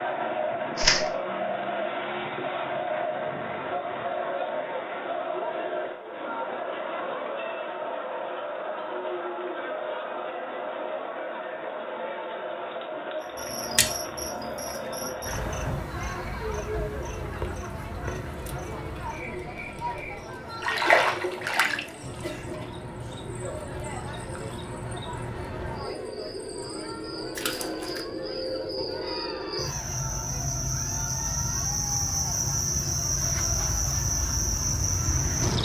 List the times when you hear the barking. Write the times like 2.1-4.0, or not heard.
not heard.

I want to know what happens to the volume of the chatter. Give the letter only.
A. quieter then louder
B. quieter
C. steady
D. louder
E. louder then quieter
B.